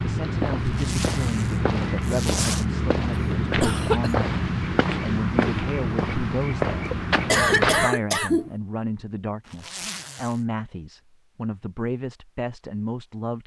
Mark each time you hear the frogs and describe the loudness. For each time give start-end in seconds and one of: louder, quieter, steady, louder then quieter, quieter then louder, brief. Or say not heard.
not heard.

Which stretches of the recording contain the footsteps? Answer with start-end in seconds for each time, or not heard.
0.0-7.9.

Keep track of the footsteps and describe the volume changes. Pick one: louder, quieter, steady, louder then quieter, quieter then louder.
steady.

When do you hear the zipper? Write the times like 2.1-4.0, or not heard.
0.6-2.6, 9.4-10.4.